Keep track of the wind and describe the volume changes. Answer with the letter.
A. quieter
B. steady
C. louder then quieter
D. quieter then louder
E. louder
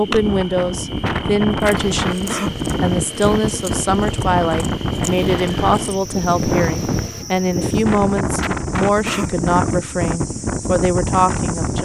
B.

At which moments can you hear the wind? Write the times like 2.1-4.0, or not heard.
0.0-11.7.